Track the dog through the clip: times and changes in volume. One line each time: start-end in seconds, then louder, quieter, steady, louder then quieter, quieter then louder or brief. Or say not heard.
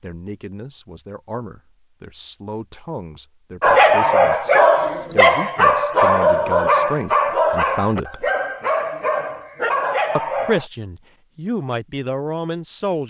3.6-10.7 quieter.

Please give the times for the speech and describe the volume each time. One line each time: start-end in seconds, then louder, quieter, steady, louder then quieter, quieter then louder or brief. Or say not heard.
0.0-8.3 louder
10.2-13.0 brief.